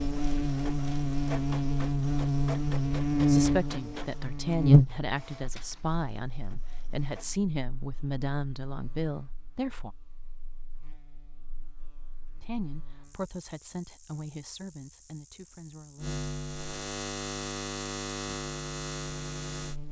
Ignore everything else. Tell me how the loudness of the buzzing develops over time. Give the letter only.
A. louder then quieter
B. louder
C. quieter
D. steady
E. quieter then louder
E.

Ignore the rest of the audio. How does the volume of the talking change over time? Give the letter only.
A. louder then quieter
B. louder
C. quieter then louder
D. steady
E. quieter
E.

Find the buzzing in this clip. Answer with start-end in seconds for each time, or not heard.
0.0-19.8.